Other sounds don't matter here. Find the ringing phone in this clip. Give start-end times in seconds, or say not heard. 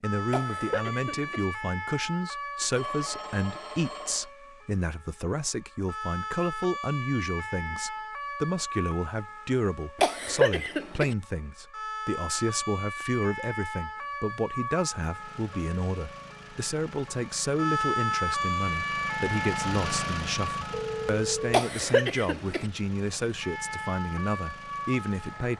2.8-4.3, 20.7-21.6.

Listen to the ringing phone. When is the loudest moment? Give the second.
21 s.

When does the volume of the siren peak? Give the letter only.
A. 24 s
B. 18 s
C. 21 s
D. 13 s
B.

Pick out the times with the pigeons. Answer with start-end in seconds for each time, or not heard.
not heard.